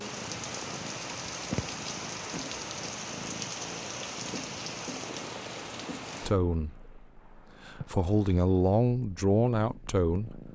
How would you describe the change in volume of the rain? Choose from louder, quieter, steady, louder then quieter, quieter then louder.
quieter.